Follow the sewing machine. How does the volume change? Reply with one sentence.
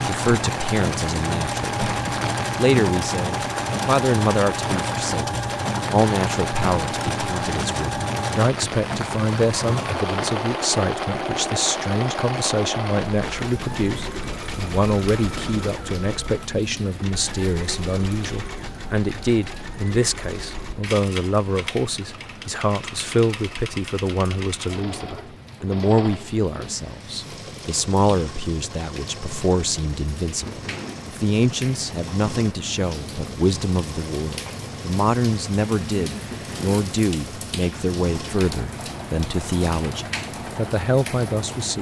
The loudness of the sewing machine goes down.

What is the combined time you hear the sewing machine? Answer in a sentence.
You can hear the sewing machine for 42 seconds altogether.